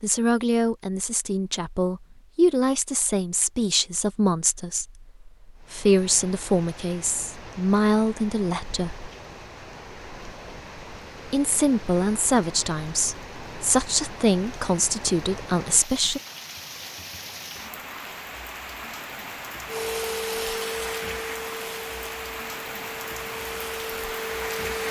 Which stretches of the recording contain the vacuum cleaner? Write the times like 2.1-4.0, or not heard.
19.6-24.8.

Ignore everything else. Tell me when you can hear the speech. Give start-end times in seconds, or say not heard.
0.0-9.1, 11.2-16.2.